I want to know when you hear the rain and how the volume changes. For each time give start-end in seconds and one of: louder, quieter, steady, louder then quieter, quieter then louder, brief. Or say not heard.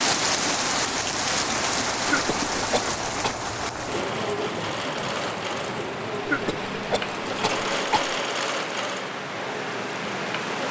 0.0-10.6 quieter.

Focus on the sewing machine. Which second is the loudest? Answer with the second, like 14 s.
8 s.